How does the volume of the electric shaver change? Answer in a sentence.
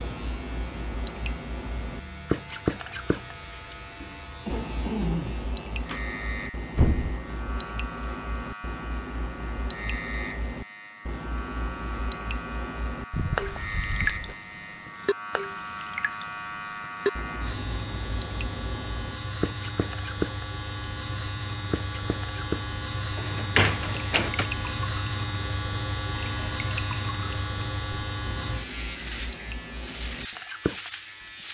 The loudness of the electric shaver goes up.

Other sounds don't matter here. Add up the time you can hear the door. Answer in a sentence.
You can hear the door for 3 seconds altogether.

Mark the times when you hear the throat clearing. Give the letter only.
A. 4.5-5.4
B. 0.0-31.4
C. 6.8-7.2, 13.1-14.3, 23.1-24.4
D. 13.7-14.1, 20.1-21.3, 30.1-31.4
A.